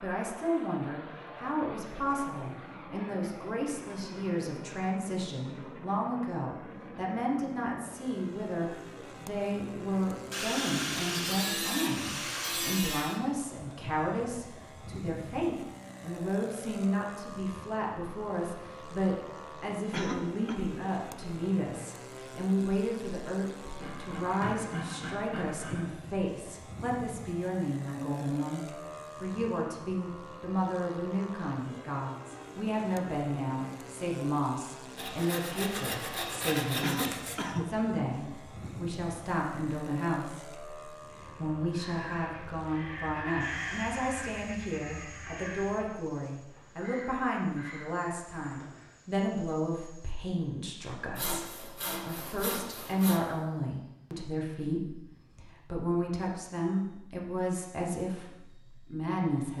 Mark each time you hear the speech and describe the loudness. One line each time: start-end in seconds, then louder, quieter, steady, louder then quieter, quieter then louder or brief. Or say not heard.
0.0-59.5 steady.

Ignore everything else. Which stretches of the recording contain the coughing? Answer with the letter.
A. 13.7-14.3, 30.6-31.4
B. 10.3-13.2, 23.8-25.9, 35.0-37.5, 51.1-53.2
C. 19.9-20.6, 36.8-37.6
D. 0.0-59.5
C.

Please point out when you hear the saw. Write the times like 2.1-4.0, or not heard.
10.3-13.2, 23.8-25.9, 35.0-37.5, 51.1-53.2.